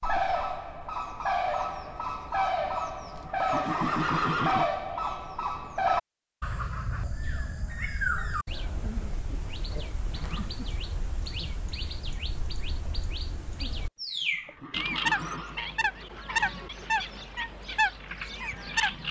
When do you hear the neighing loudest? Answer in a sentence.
The loudest moment of the neighing is at 4 seconds.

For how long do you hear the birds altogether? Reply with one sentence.
You can hear the birds for 19 seconds altogether.